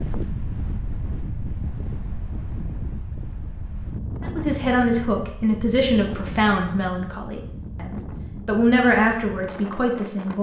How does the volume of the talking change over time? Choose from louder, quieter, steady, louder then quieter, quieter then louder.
quieter then louder.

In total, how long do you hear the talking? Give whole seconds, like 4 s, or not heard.
6 s.